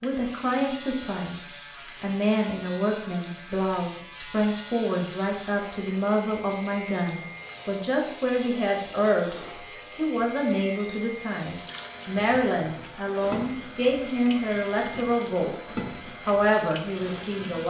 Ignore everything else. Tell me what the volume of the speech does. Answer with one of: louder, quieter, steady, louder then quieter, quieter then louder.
steady.